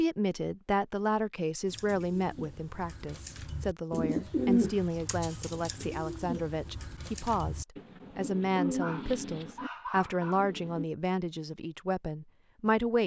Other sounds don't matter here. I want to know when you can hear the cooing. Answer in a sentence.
The cooing can be heard from 1.6 to 10.8 s.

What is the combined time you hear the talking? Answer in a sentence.
You can hear the talking for 13 seconds altogether.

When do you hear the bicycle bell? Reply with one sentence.
You can't hear the bicycle bell here.